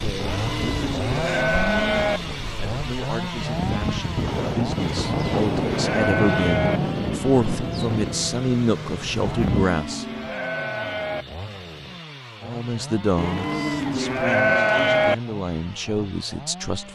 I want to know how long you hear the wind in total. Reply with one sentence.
The wind can be heard for 10 seconds in total.